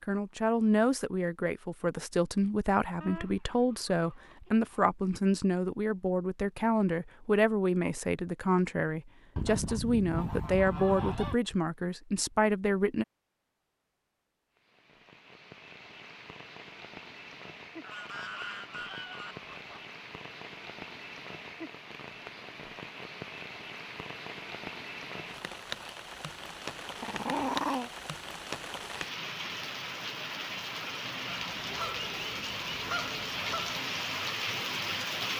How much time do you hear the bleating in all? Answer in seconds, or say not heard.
not heard.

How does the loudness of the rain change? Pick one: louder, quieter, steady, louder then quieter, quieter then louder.
louder.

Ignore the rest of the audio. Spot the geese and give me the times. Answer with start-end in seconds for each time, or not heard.
3.0-4.9, 9.3-11.3, 17.8-19.8, 31.2-33.8.